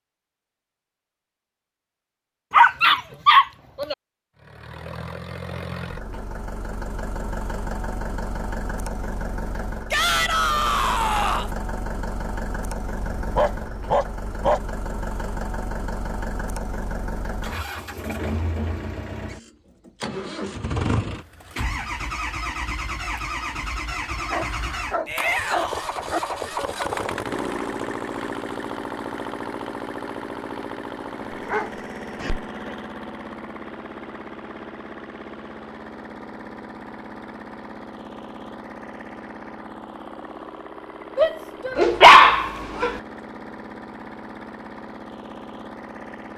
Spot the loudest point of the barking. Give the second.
42 s.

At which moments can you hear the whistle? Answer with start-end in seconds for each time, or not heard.
not heard.